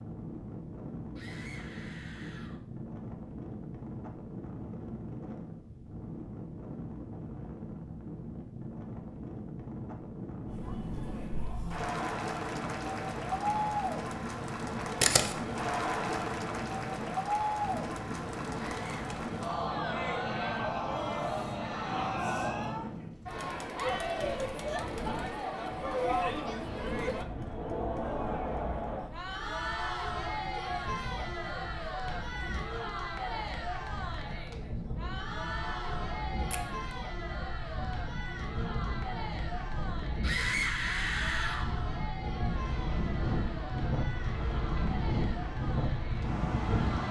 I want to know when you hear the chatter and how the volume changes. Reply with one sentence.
You can hear the chatter from 10.4 to 47.0 s, getting quieter.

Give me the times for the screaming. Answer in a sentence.
The screaming can be heard from 1.1 to 2.6 s, from 18.6 to 19.1 s and from 40.2 to 41.7 s.